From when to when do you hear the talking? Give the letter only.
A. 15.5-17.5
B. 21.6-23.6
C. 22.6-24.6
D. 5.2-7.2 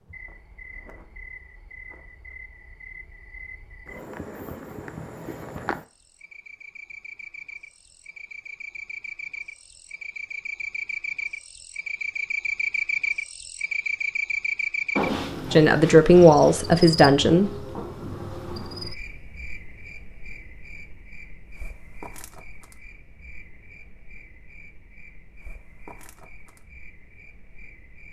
A.